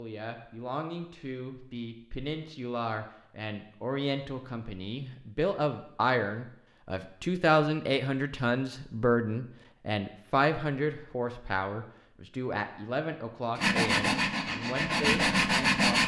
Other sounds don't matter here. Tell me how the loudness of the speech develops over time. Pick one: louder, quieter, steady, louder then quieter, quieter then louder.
louder then quieter.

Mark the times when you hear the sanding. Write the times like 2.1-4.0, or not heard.
13.6-16.0.